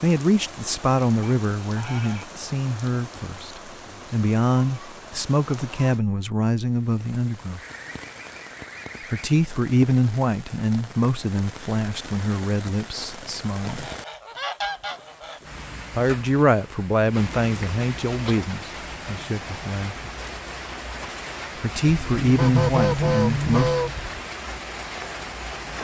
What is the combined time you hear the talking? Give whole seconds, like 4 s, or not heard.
19 s.